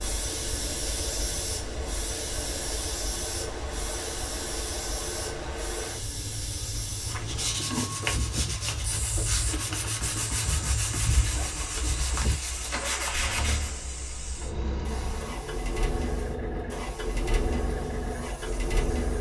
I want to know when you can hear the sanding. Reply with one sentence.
You can hear the sanding from 7.0 to 13.7 s.